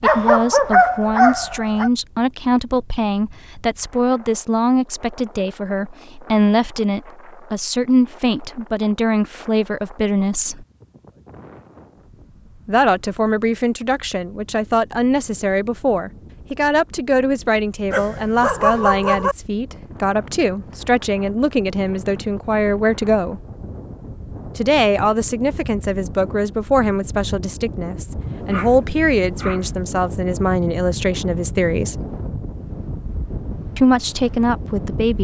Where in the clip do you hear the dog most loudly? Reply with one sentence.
The volume of the dog peaks at 1 second.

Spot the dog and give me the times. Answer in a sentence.
You can hear the dog from 0.0 to 1.9 s, from 17.9 to 19.4 s and from 28.2 to 29.8 s.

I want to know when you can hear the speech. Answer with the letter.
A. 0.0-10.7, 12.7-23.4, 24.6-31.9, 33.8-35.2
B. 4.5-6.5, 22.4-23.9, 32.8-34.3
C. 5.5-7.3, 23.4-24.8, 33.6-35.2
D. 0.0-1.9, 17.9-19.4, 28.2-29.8
A.